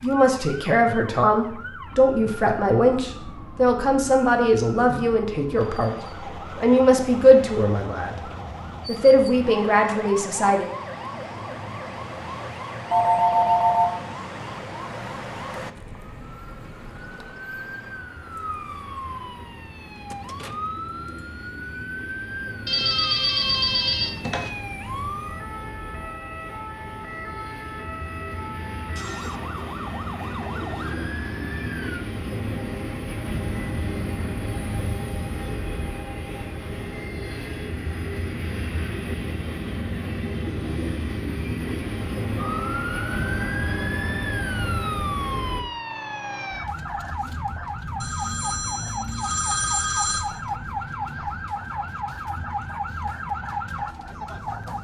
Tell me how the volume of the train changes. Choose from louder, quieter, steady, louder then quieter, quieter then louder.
louder.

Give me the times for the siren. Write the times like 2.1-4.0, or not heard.
0.0-32.0, 42.4-54.7.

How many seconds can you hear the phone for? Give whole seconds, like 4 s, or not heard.
5 s.